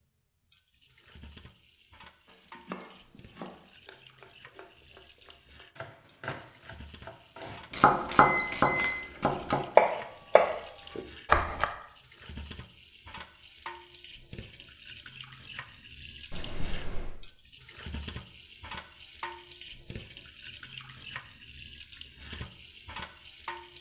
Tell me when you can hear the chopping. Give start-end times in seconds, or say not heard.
2.2-11.7.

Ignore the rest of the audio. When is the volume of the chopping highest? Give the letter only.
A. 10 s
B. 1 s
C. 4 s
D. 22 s
A.